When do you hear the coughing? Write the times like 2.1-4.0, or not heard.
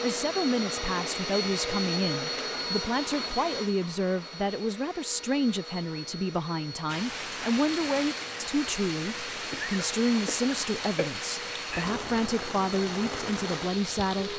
9.5-11.2.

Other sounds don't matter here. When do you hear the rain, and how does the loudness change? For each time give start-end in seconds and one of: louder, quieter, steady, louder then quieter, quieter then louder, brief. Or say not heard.
6.8-14.3 steady.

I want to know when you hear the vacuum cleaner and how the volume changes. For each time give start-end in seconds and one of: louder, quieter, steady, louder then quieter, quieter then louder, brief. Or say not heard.
0.0-14.3 quieter.